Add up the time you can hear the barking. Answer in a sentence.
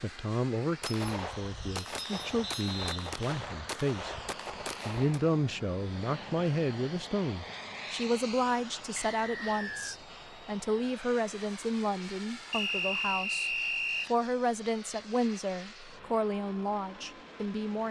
The barking can't be heard in this clip.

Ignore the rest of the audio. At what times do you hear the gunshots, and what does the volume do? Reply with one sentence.
The gunshots can be heard from 0.8 to 5.2 s, at a steady volume.